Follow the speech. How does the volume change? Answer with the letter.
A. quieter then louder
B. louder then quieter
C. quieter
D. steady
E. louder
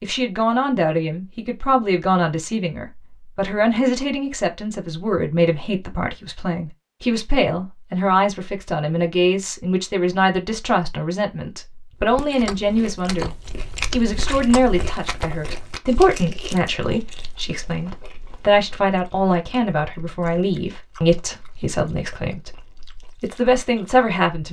D.